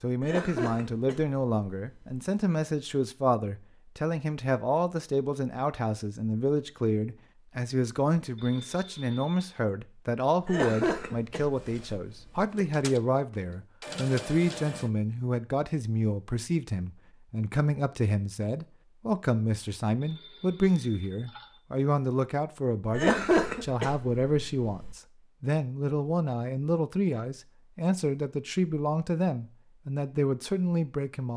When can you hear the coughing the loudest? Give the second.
23 s.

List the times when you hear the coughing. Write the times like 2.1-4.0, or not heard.
0.2-2.2, 10.4-12.4, 22.9-24.9.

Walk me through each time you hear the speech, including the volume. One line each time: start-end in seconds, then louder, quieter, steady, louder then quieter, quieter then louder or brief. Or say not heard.
0.0-31.3 steady.